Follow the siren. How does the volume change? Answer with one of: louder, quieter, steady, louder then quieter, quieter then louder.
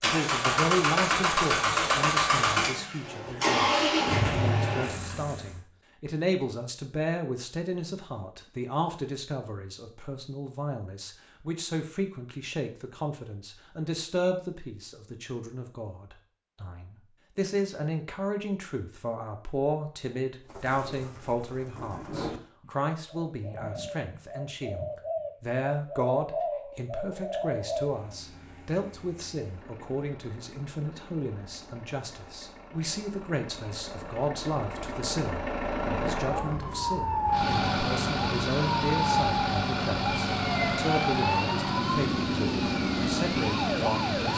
steady.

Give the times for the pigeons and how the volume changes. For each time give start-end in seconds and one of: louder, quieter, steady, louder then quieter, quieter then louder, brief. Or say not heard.
20.4-28.1 louder.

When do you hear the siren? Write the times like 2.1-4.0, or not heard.
36.3-44.3.